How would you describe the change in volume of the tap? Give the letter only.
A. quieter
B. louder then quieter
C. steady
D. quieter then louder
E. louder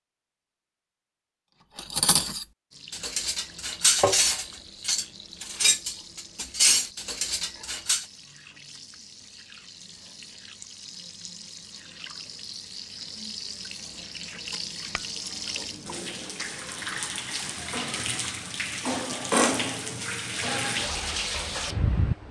E.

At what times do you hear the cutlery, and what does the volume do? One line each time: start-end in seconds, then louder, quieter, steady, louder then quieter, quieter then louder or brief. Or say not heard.
1.5-8.1 steady.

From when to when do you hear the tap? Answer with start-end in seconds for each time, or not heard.
2.7-22.2.